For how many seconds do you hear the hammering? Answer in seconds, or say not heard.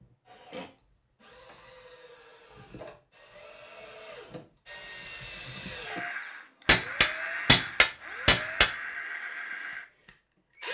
2 s.